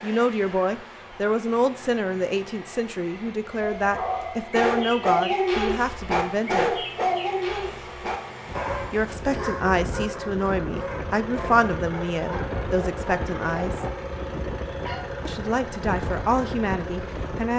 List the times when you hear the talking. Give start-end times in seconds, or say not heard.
0.0-6.8, 8.9-13.8, 15.2-17.5.